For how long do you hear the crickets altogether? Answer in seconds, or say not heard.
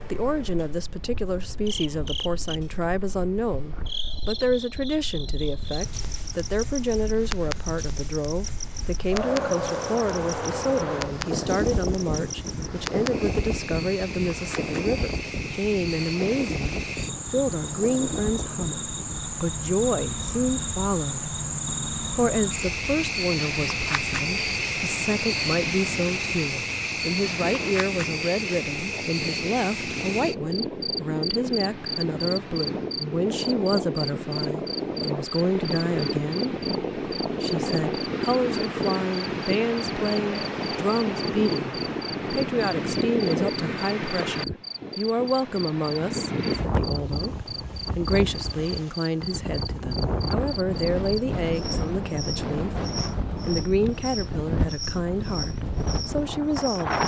57 s.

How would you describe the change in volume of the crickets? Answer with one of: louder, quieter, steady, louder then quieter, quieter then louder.
louder then quieter.